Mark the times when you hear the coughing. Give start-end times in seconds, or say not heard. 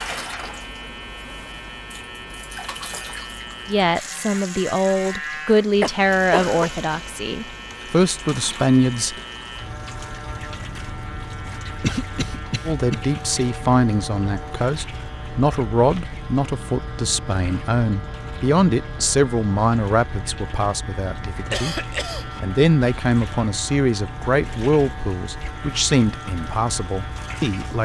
5.8-6.7, 11.8-13.0, 21.4-22.4.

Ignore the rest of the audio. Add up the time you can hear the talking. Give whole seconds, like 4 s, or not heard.
20 s.